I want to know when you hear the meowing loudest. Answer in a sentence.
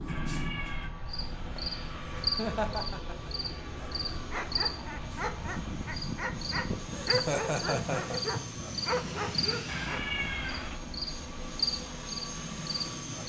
The volume of the meowing peaks at 10 seconds.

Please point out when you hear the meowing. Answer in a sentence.
You can hear the meowing from 0.1 to 0.9 s and from 9.7 to 10.8 s.